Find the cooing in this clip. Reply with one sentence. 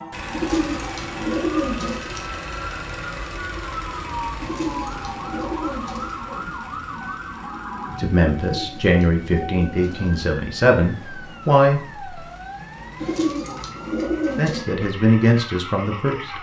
The cooing can be heard from 0.3 to 2.2 s, from 4.4 to 6.2 s, from 8.5 to 10.1 s and from 13.0 to 14.7 s.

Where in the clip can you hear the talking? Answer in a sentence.
The talking can be heard from 8.0 to 12.0 s and from 14.3 to 16.3 s.